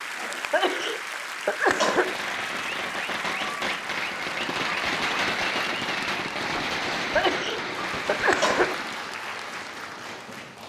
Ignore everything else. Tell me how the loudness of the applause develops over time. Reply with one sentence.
The volume of the applause stays about the same.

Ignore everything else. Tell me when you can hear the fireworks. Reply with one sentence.
The fireworks can be heard from 1.9 to 9.2 s.